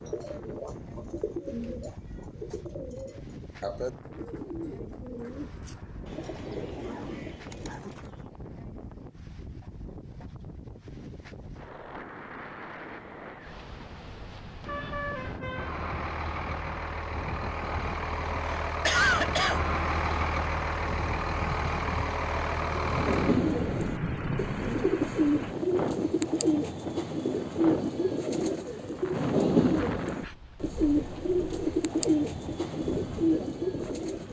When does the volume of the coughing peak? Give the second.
19 s.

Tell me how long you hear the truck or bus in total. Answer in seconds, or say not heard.
11 s.